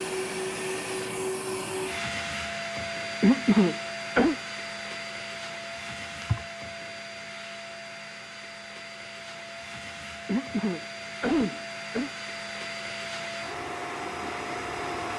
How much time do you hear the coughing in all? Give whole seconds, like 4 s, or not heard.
3 s.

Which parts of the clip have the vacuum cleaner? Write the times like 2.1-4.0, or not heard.
0.0-15.1.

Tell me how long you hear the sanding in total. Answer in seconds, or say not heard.
not heard.